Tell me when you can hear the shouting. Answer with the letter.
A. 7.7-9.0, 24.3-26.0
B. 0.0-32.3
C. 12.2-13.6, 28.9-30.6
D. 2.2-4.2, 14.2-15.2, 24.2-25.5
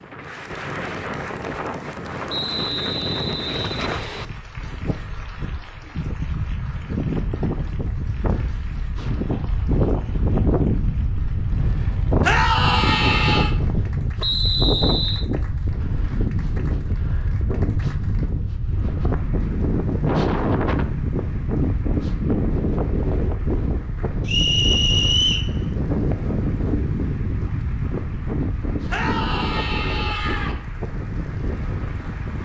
C.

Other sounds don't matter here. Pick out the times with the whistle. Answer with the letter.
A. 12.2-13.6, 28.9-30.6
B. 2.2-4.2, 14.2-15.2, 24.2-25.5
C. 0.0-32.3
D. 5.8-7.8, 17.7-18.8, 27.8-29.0
B.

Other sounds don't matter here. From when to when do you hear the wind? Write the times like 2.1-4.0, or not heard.
0.0-32.3.